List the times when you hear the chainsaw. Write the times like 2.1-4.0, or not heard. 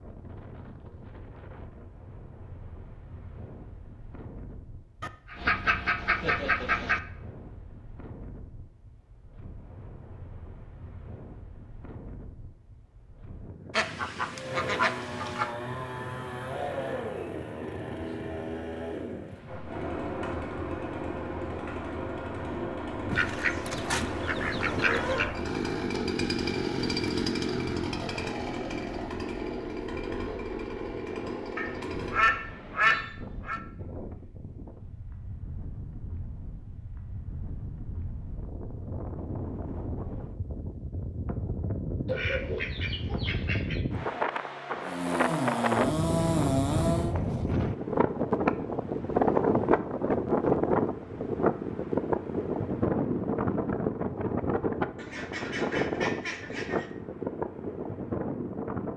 14.3-32.4, 44.8-47.1.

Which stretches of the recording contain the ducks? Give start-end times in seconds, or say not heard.
5.0-7.0, 13.8-15.5, 23.1-25.4, 31.6-33.6, 42.0-43.8, 55.0-57.0.